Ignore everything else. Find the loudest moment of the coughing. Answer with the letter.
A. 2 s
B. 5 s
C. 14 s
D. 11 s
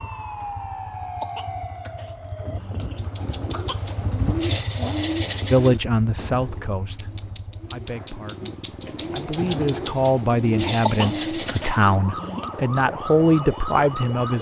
D.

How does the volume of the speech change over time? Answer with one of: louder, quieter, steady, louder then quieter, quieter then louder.
quieter then louder.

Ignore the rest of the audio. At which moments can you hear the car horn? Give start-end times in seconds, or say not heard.
not heard.